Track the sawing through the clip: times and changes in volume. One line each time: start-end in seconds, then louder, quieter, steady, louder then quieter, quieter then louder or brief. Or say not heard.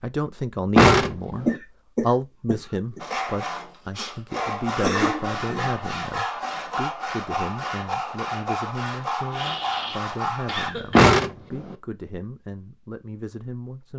3.0-10.7 steady.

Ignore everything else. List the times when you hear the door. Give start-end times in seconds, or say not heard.
0.8-1.6, 10.9-11.8.